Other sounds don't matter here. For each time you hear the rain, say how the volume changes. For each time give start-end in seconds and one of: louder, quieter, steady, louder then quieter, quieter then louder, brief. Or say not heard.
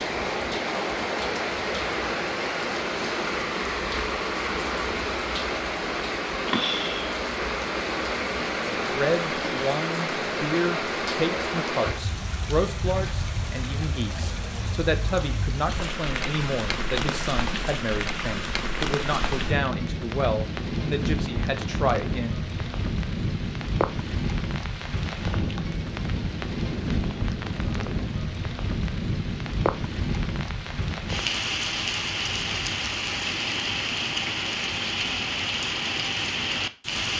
0.0-37.1 steady.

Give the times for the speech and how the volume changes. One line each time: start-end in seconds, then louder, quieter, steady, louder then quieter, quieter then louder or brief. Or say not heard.
8.7-22.4 steady.